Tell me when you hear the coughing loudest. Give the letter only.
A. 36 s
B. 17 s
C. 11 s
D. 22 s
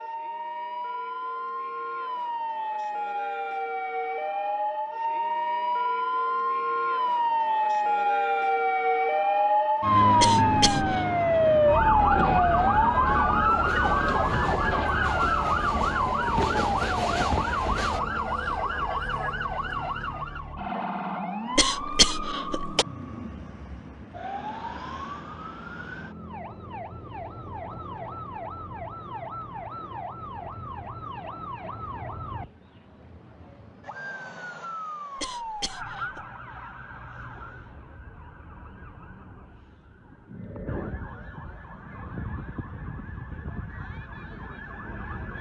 D.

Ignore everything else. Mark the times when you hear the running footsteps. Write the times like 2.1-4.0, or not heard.
not heard.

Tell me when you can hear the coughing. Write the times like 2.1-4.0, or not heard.
10.2-11.1, 21.6-22.9, 35.1-36.2.